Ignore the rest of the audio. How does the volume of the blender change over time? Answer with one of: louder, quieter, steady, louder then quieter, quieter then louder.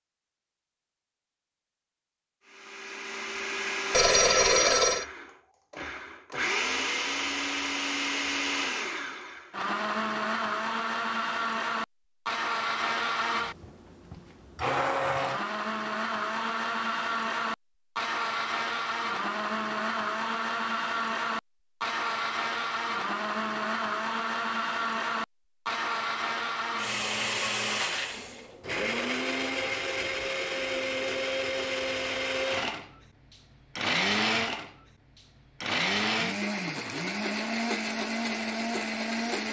steady.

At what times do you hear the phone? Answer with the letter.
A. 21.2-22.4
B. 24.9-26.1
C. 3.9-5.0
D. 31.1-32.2
C.